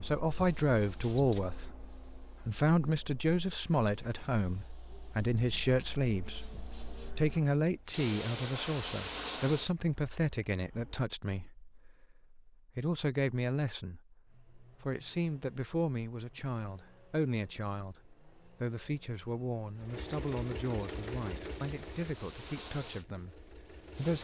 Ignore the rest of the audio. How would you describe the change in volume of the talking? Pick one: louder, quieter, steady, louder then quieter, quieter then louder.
quieter.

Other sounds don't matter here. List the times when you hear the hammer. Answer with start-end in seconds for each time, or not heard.
not heard.